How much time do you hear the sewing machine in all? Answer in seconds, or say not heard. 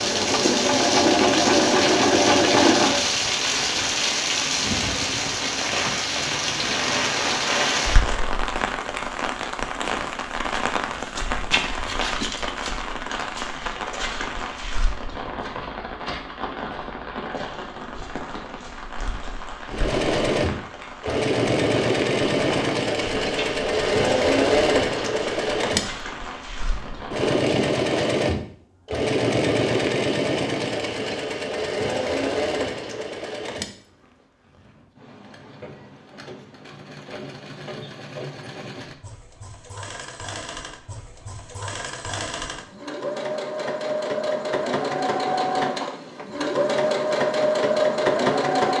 32 s.